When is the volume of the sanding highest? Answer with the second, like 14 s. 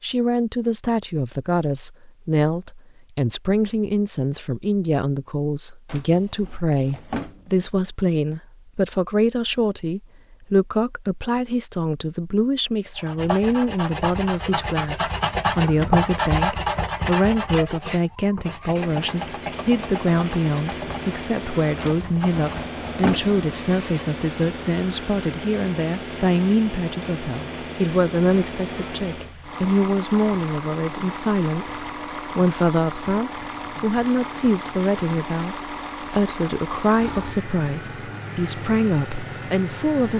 16 s.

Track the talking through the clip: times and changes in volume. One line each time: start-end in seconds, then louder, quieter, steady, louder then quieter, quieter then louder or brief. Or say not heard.
0.0-40.1 steady.